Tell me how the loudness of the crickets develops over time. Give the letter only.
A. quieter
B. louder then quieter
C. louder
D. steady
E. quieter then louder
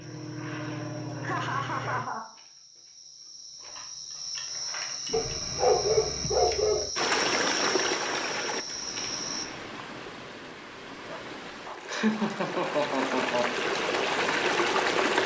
C.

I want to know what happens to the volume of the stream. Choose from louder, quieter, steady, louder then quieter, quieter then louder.
quieter then louder.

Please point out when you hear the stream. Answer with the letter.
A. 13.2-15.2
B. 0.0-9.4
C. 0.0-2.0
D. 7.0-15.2
D.